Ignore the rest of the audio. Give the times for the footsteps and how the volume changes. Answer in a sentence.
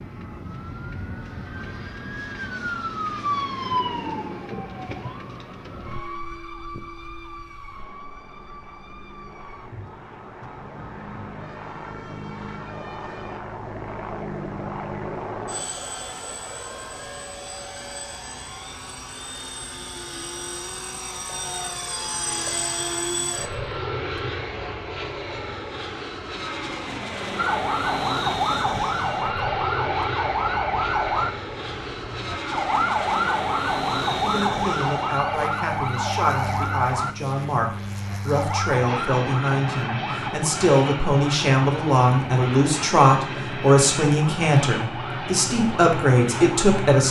The footsteps can't be heard in this clip.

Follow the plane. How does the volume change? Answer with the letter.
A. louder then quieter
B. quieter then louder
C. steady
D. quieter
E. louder
E.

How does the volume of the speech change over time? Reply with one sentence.
The loudness of the speech goes up.